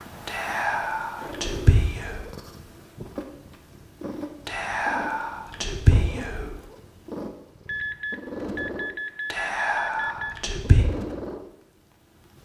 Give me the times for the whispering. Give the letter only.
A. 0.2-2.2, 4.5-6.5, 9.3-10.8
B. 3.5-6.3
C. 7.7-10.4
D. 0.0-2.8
A.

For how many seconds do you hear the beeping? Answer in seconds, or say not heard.
3 s.